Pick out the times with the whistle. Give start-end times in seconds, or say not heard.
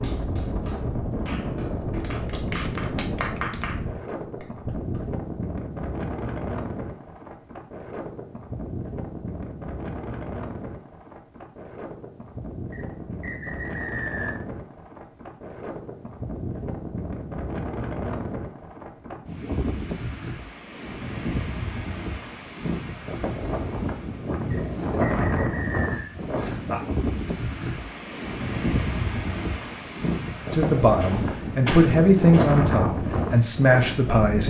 12.7-14.4, 24.5-25.9.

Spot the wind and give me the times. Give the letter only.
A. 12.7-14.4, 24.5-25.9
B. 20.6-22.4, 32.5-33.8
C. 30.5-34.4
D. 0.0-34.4
D.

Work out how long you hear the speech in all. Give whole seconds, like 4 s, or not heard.
4 s.